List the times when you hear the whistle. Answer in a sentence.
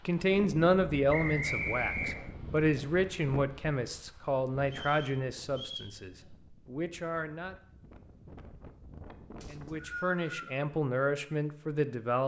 You can hear the whistle from 1.1 to 2.3 s, from 4.7 to 6.0 s and from 9.4 to 10.5 s.